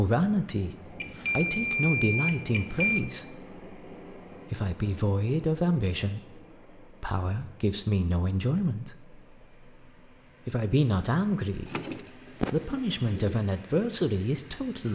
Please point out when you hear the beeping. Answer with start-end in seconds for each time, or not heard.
1.0-3.0.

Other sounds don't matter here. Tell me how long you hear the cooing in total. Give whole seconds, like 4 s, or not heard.
2 s.